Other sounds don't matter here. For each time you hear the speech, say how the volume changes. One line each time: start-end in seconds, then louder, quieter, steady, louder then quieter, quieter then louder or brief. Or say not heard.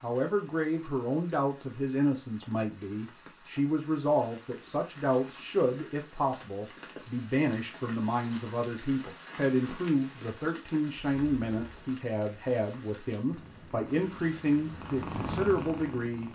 0.0-16.2 steady.